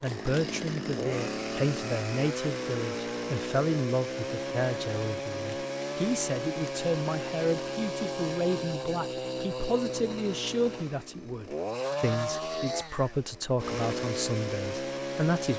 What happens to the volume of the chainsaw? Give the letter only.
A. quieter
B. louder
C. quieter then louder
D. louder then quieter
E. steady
E.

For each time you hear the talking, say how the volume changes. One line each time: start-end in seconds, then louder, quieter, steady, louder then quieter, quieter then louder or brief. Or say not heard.
0.0-15.5 steady.